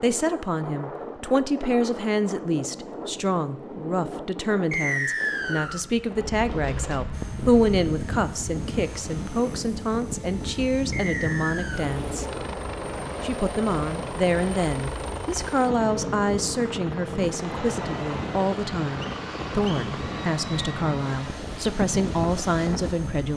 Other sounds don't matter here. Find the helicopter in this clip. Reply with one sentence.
The helicopter can be heard from 7.1 to 23.3 s.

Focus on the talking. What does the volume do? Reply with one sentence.
The loudness of the talking stays about the same.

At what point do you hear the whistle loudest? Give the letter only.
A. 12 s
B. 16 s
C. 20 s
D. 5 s
D.